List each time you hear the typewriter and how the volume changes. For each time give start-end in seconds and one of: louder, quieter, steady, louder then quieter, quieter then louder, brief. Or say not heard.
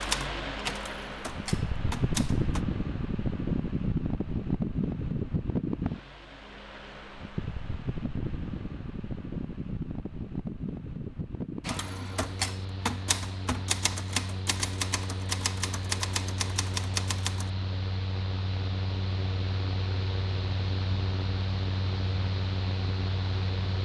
0.0-2.6 brief
11.7-17.5 steady.